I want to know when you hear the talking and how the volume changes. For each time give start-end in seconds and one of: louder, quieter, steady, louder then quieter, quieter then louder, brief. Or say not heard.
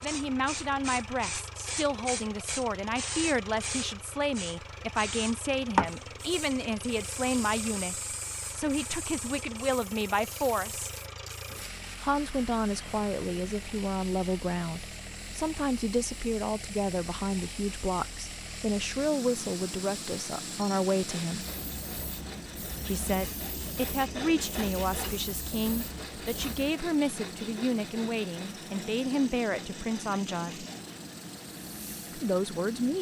0.0-10.9 steady
12.0-21.4 steady
22.9-30.6 steady
32.1-32.9 brief.